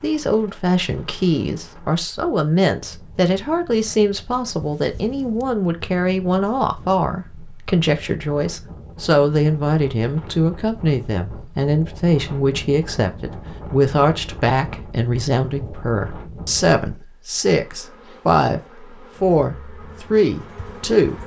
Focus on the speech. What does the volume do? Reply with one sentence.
The loudness of the speech stays about the same.